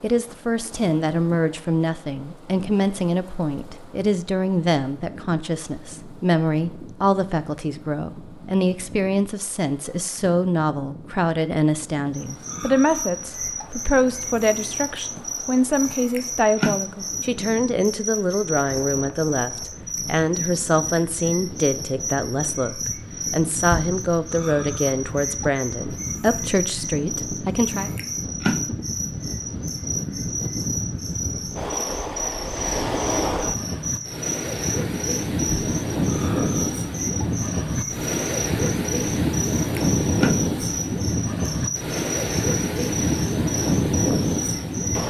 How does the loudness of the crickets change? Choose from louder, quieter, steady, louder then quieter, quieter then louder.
steady.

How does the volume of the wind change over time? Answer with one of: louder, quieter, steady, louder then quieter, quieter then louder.
louder.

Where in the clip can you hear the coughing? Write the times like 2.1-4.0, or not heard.
not heard.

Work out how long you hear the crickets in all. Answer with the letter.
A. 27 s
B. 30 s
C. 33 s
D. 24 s
C.